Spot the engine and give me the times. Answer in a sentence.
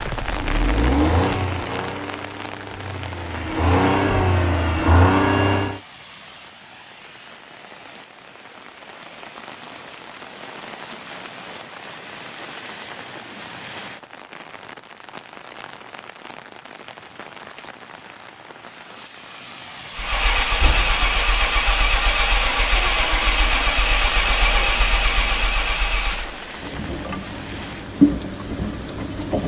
The engine can be heard from 0.0 to 5.8 s and from 19.9 to 29.4 s.